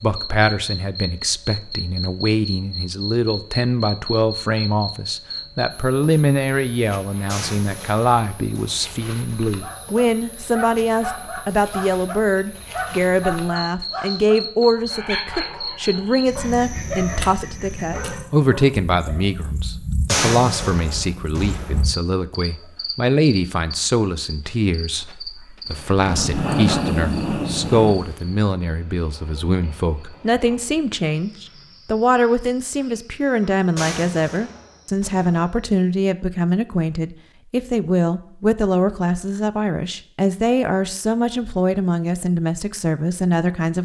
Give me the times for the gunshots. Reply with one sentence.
The gunshots can be heard from 7.2 to 9.0 s, from 20.1 to 21.8 s and from 33.8 to 35.5 s.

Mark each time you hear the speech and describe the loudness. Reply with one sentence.
The speech can be heard from 0.0 to 43.8 s, at a steady volume.